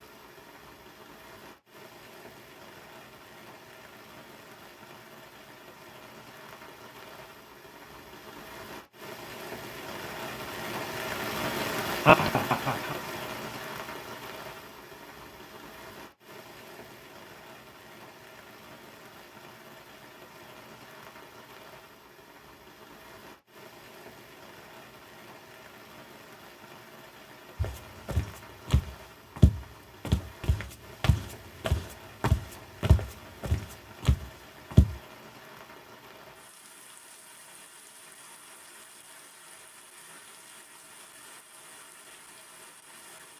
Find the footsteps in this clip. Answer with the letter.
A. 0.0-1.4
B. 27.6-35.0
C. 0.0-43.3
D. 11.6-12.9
B.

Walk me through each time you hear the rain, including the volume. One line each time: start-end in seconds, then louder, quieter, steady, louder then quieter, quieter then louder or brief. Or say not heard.
0.0-43.3 louder then quieter.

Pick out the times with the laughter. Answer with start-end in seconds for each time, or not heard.
11.6-12.9.